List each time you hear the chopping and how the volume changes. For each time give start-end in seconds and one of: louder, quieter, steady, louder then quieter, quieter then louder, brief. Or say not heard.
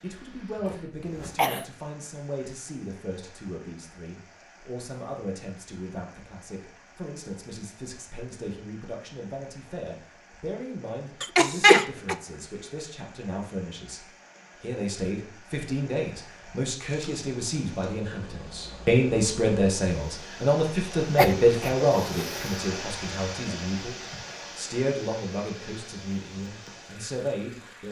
not heard.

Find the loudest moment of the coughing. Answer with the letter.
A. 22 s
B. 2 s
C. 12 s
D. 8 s
C.